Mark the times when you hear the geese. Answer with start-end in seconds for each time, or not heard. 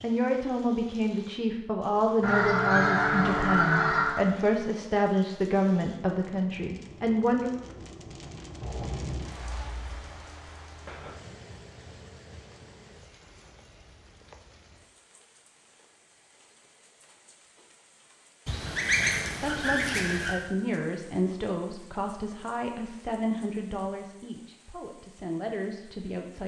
2.2-4.2, 18.4-20.4.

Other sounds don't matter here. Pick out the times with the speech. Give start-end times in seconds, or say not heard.
0.0-7.5, 19.4-26.4.